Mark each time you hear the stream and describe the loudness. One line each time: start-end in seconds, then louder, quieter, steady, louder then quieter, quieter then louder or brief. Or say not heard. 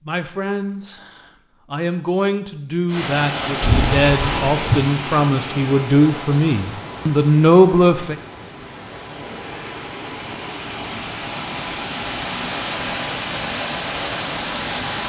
2.9-15.0 quieter then louder.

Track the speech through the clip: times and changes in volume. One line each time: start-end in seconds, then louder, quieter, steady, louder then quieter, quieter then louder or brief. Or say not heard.
0.1-8.2 louder.